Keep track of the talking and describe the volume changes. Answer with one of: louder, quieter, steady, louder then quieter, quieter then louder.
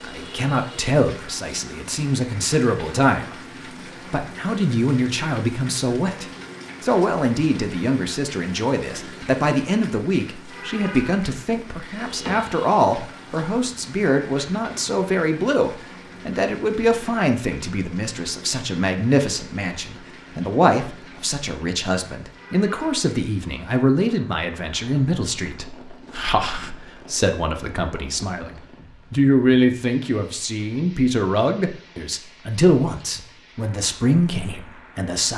steady.